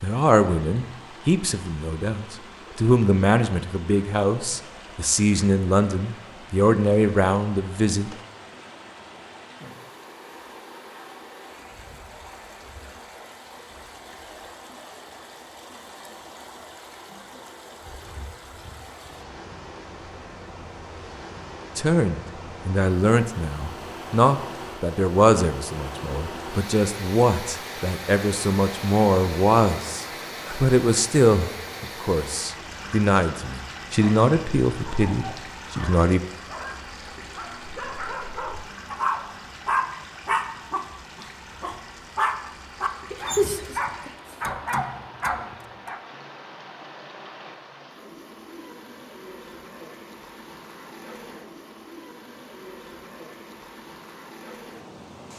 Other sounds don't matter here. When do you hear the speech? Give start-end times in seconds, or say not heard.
0.0-8.2, 21.8-36.2.